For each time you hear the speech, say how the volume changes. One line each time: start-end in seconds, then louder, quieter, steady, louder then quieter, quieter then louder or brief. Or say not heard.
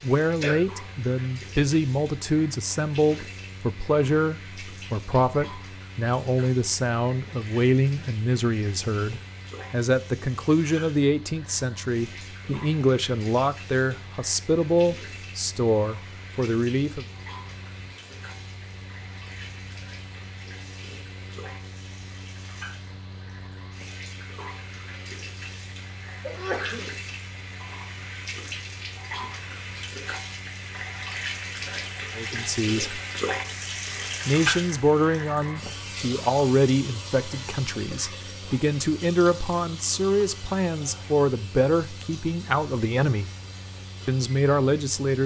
0.0-17.1 steady
32.1-33.0 brief
34.2-43.3 steady
44.0-45.2 brief.